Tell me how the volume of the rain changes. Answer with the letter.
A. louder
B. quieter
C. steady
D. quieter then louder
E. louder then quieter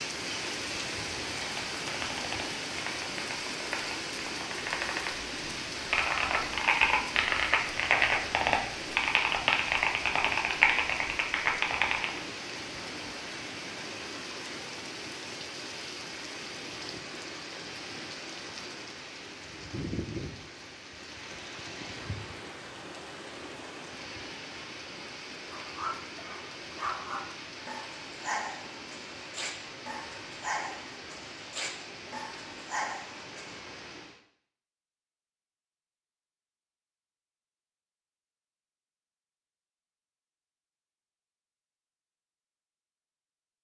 B.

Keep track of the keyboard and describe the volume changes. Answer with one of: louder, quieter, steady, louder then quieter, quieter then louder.
louder.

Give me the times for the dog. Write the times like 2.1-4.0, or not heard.
25.4-33.6.